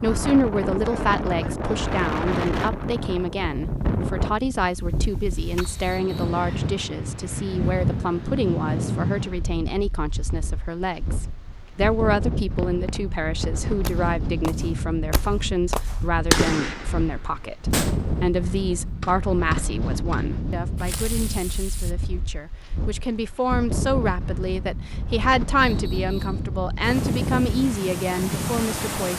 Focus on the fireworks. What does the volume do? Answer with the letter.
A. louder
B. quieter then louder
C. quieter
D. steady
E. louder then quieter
E.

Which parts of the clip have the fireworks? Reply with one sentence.
The fireworks can be heard from 12.4 to 21.9 s.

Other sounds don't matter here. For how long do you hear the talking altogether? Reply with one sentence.
The talking can be heard for 29 seconds in total.